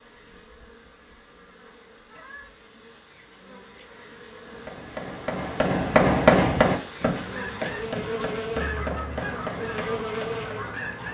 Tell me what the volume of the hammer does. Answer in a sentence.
The volume of the hammer goes up, then down.